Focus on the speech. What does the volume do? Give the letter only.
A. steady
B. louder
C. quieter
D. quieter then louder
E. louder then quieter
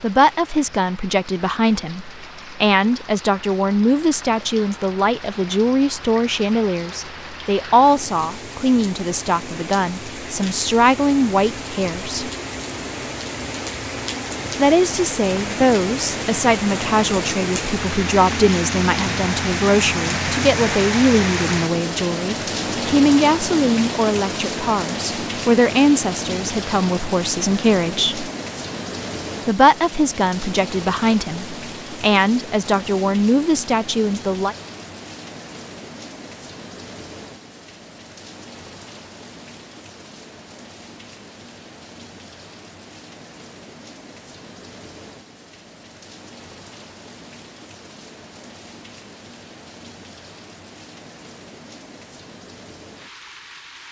A.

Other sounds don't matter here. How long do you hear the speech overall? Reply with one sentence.
You can hear the speech for 31 seconds altogether.